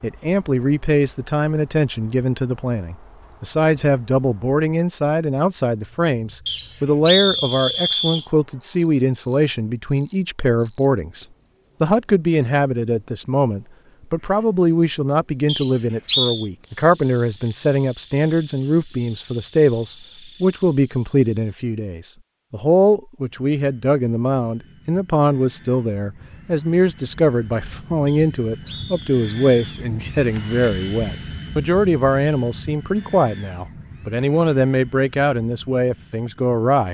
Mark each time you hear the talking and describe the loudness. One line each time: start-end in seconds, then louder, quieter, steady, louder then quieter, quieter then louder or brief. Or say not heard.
0.0-36.8 steady.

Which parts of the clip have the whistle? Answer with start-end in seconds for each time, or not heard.
6.5-8.2, 15.4-16.4, 28.1-29.9.